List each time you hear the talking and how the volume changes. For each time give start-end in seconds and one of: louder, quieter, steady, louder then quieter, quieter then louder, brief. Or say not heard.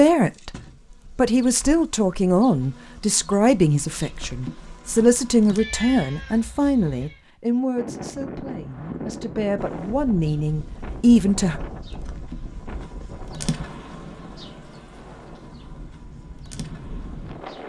0.0-0.6 brief
1.1-11.6 quieter then louder.